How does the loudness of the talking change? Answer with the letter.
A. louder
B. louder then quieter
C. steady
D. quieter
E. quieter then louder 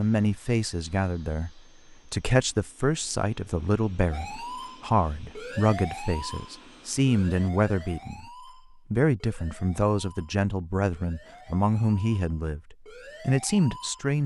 C.